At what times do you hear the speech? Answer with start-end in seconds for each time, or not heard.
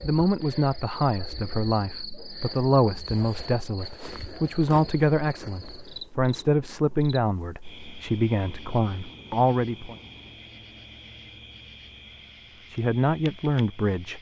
0.0-9.9, 12.7-14.1.